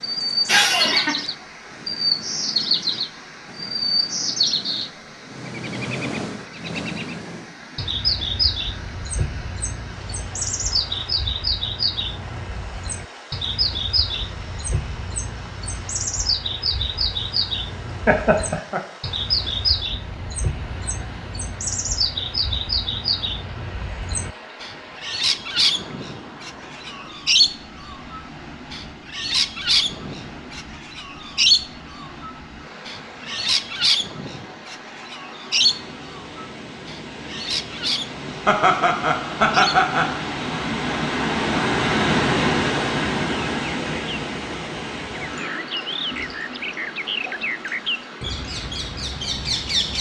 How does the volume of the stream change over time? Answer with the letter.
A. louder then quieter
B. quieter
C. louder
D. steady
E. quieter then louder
C.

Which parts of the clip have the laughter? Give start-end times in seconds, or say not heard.
0.5-1.1, 18.1-18.8, 38.5-40.2.